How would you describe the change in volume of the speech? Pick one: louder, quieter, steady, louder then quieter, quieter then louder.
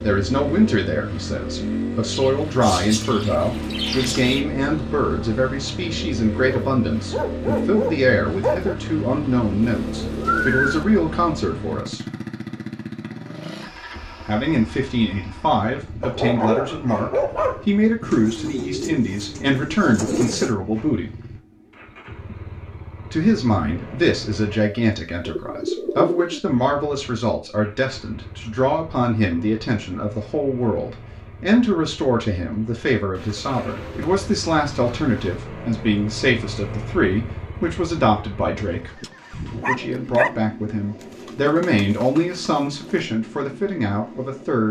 steady.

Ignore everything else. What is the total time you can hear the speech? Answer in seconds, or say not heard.
40 s.